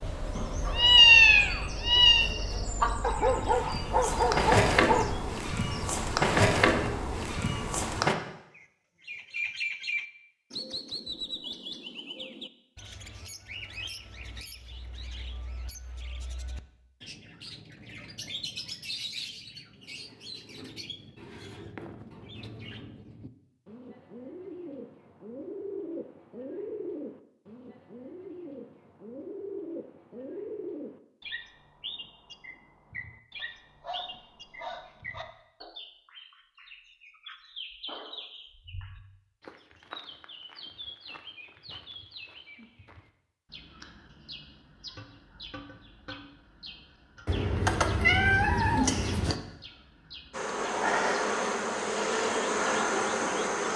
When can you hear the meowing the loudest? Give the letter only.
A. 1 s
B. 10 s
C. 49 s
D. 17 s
A.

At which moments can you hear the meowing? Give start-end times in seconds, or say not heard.
0.3-2.3, 47.2-49.4.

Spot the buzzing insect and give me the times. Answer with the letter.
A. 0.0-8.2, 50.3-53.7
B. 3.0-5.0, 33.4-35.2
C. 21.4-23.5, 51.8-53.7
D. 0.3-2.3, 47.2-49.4
A.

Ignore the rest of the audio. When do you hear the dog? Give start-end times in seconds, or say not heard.
3.0-5.0, 33.4-35.2.